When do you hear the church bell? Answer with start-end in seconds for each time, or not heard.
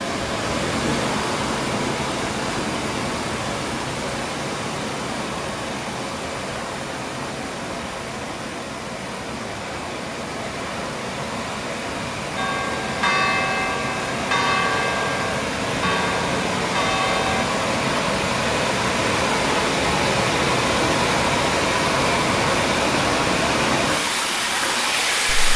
12.3-17.4.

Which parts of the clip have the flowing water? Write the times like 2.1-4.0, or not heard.
0.0-25.5.